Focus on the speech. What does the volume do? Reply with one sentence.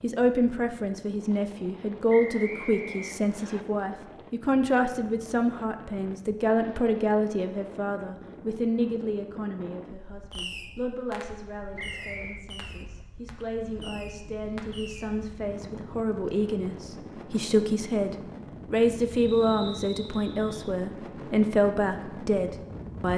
The loudness of the speech goes down, then up.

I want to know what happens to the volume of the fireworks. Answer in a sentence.
The volume of the fireworks stays about the same.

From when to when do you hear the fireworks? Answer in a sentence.
You can hear the fireworks from 10.3 to 15.1 s.